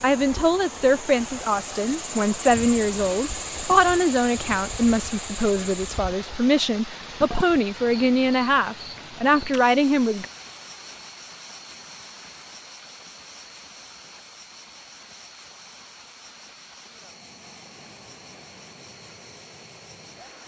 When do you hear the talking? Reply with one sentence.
The talking can be heard from 0.0 to 10.2 s.